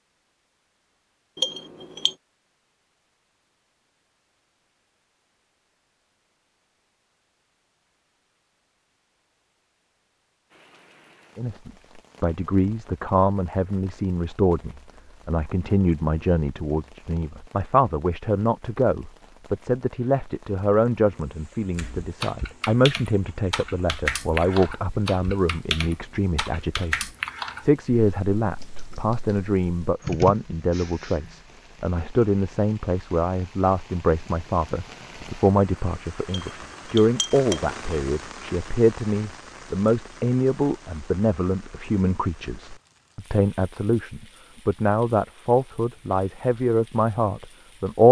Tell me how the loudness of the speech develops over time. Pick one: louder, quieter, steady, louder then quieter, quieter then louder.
steady.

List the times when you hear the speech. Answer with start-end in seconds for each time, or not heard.
11.3-48.0.